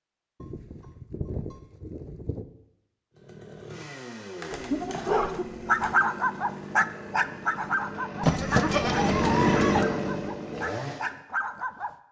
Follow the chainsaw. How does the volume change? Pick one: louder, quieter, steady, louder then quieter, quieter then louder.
louder.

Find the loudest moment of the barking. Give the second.
6 s.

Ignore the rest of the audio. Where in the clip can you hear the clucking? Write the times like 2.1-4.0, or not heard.
not heard.